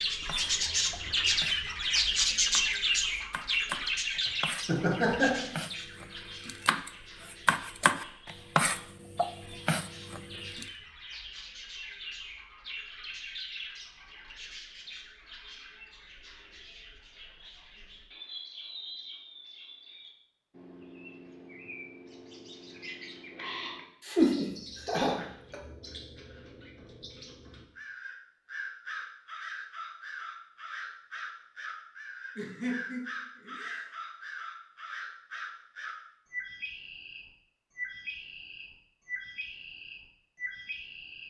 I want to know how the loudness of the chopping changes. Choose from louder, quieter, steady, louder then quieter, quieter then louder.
louder.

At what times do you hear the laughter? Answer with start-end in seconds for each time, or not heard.
4.7-5.5, 24.1-25.6, 32.4-33.9.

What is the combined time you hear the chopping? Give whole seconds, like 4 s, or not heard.
11 s.